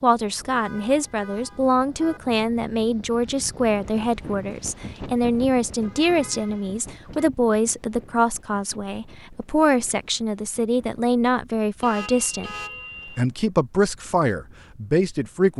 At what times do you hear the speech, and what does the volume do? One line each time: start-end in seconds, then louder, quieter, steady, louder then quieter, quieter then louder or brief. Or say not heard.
0.0-12.6 steady
13.2-15.5 brief.